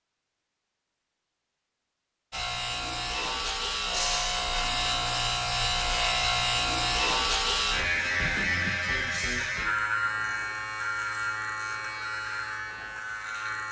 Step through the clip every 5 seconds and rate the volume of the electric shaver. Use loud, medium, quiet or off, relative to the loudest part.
loud, loud, medium.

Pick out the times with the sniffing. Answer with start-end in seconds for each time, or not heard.
3.9-4.3, 9.1-9.6.